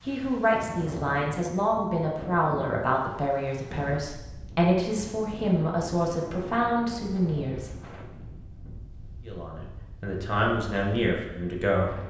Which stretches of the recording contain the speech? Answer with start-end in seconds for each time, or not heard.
0.1-7.7, 9.2-11.9.